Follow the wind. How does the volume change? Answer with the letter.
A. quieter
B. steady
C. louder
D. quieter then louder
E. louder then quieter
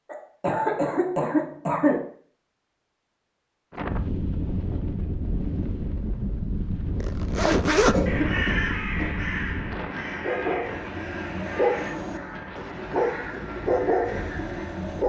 A.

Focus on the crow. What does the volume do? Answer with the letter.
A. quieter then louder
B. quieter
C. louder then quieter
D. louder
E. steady
B.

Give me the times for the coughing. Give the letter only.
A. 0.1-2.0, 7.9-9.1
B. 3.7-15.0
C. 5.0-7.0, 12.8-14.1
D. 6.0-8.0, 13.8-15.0
A.